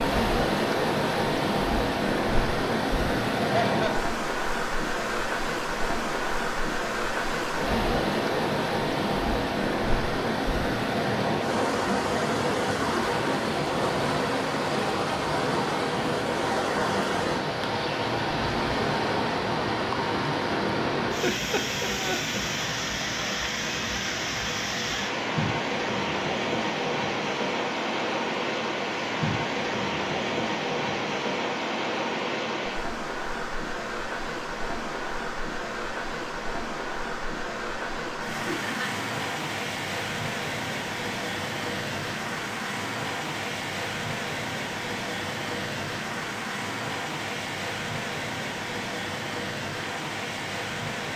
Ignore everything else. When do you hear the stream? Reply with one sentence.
The stream can be heard from 0.0 to 51.1 s.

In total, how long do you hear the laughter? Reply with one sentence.
You can hear the laughter for 2 seconds altogether.